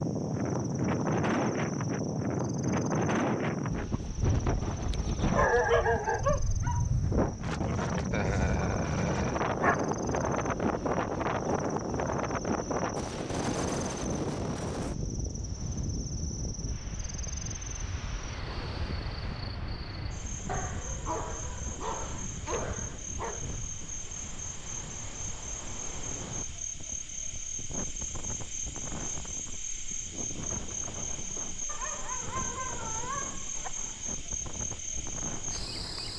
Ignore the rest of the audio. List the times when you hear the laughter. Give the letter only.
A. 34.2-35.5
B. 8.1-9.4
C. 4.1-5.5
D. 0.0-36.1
B.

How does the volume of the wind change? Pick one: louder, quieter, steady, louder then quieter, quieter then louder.
quieter.